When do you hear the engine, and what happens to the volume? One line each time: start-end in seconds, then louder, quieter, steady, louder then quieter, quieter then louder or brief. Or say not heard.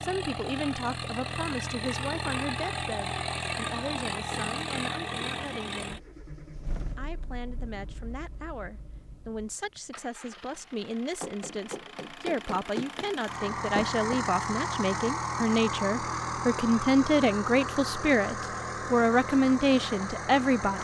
0.0-20.7 quieter then louder.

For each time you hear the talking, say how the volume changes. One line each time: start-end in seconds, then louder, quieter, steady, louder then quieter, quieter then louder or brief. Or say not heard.
0.0-6.0 quieter
7.0-20.7 louder.